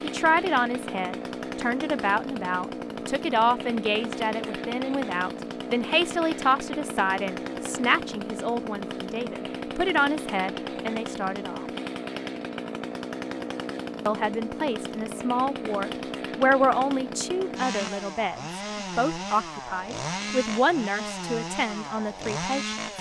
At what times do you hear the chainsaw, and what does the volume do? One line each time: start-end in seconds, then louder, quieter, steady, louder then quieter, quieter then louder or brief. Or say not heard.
0.0-22.9 steady.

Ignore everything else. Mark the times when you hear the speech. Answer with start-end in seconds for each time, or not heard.
0.0-11.7, 14.1-22.8.